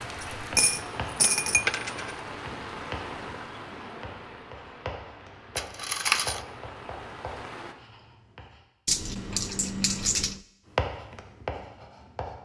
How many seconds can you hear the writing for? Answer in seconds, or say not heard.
10 s.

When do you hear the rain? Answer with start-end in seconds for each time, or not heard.
0.0-7.8.